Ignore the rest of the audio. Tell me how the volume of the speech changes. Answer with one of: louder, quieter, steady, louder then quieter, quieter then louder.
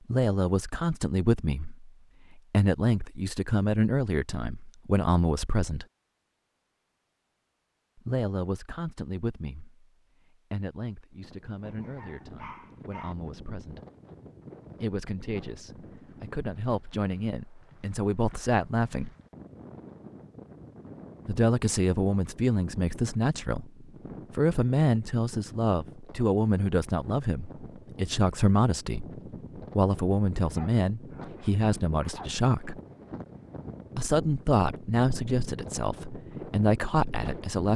quieter then louder.